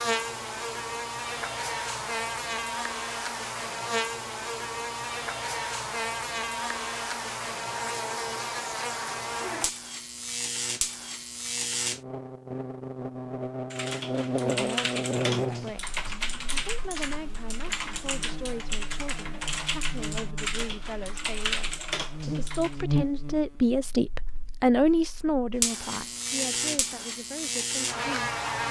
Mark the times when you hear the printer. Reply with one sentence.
The printer can't be heard in this clip.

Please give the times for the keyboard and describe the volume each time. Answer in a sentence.
The keyboard can be heard from 13.7 to 22.9 s, at a steady volume.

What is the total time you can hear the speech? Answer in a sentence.
The speech can be heard for 14 seconds in total.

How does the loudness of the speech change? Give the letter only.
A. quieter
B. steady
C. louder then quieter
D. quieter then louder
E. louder
C.